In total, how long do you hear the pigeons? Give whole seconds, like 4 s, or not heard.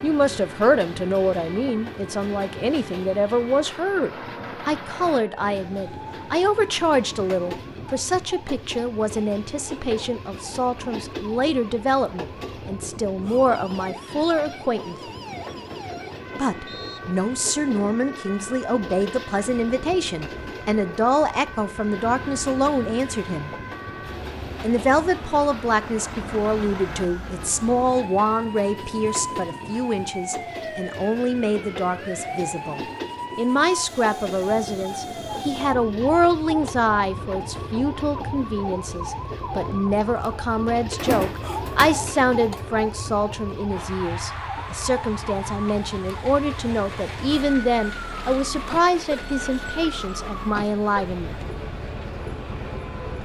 2 s.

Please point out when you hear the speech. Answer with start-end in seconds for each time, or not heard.
0.0-14.9, 16.4-23.5, 24.6-51.4.